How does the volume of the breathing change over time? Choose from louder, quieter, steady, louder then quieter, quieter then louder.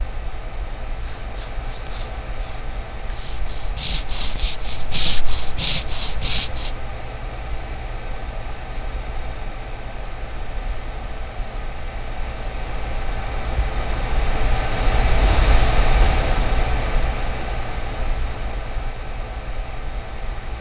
louder.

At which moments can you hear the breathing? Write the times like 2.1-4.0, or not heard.
0.9-6.7.